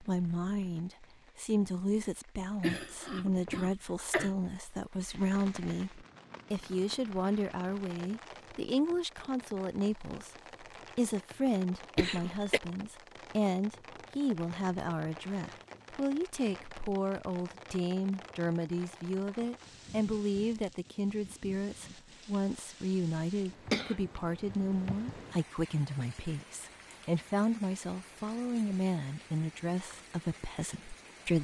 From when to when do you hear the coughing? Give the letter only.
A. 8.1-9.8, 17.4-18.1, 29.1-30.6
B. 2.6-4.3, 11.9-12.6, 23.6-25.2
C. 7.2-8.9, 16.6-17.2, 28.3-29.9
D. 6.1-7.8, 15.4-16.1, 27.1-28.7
B.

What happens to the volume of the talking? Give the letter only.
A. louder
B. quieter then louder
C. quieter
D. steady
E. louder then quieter
D.